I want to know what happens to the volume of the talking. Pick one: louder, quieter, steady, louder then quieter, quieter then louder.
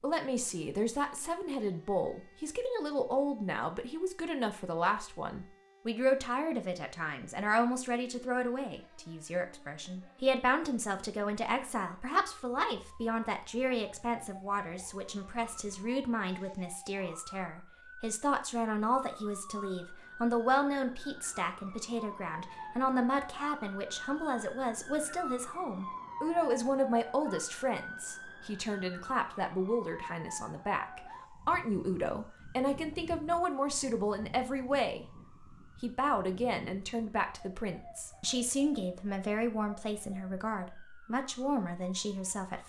steady.